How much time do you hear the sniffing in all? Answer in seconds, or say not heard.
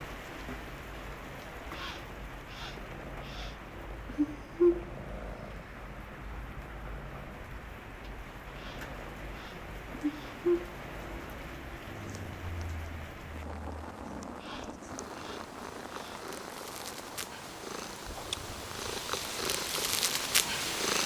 6 s.